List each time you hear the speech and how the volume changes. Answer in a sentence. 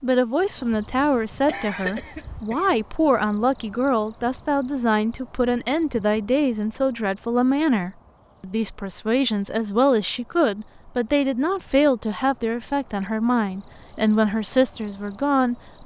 The speech can be heard from 0.0 to 15.8 s, at a steady volume.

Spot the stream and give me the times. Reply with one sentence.
The stream can't be heard in this clip.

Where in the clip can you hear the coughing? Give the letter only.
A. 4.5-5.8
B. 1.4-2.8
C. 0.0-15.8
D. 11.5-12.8
B.